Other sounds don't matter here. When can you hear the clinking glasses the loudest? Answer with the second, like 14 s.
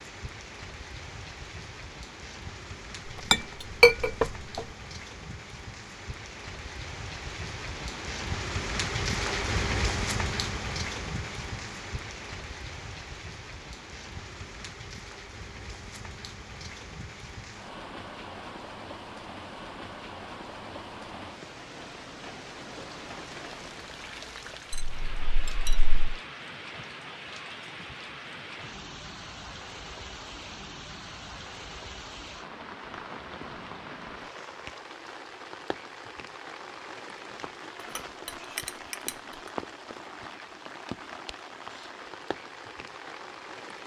4 s.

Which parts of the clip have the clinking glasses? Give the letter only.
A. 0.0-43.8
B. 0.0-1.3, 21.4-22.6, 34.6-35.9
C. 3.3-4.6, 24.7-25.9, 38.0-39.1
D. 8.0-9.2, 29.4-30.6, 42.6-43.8
C.